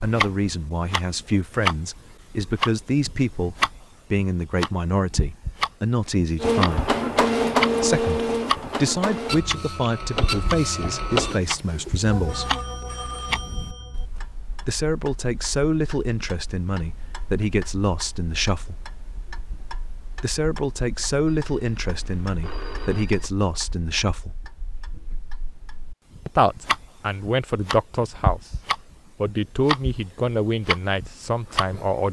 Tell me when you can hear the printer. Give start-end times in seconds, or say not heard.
6.4-12.4.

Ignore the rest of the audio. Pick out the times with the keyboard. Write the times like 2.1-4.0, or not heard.
not heard.